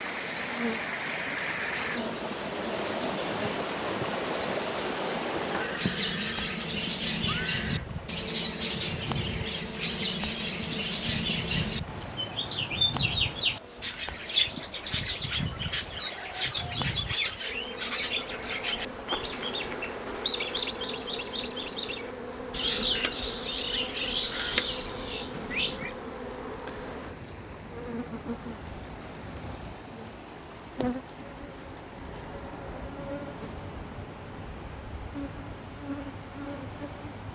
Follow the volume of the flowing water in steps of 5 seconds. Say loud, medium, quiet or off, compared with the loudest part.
loud, medium, quiet, quiet, quiet, quiet, quiet, quiet.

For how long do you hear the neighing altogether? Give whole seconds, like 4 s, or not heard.
2 s.